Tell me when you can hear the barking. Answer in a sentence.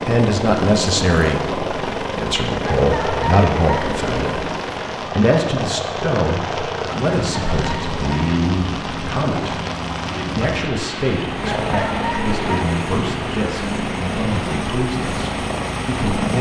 You can hear the barking from 2.6 to 4.0 s, from 7.2 to 8.3 s and from 11.4 to 12.8 s.